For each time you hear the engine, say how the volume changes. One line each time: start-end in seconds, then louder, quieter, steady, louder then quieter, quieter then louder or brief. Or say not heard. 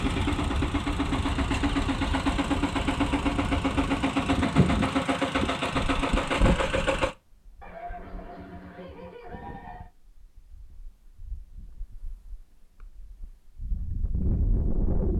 0.0-7.2 steady.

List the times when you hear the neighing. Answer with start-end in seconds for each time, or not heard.
7.6-9.9.